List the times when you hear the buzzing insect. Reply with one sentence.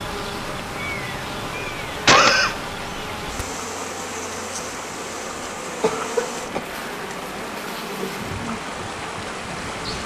The buzzing insect can be heard from 0.0 to 10.0 s.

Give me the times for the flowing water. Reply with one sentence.
The flowing water can be heard from 0.1 to 10.0 s.